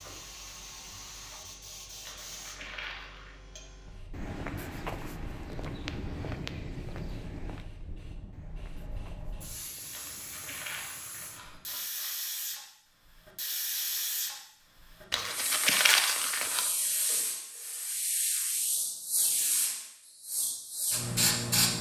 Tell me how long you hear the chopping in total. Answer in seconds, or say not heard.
not heard.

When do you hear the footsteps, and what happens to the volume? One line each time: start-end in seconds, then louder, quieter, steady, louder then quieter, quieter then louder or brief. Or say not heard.
4.1-11.8 quieter.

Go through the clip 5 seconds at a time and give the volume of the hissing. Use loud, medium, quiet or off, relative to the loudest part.
quiet, quiet, medium, medium, loud.